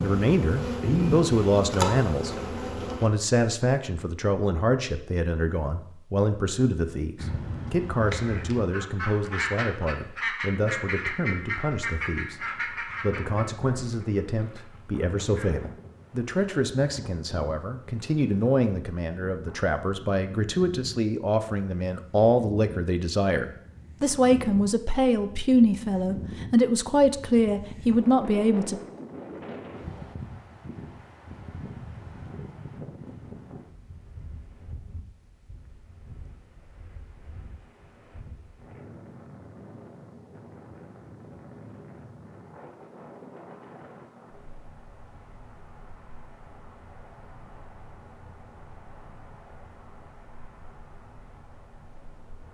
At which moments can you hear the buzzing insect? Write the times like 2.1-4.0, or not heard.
0.0-3.1.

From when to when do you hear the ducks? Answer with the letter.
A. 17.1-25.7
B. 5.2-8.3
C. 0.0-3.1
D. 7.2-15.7
D.